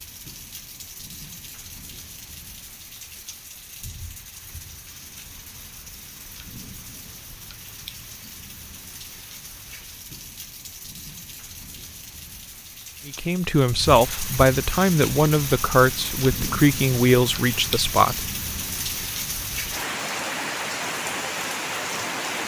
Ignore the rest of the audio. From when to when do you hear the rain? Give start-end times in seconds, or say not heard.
0.0-22.4.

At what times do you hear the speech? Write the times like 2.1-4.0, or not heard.
13.1-18.2.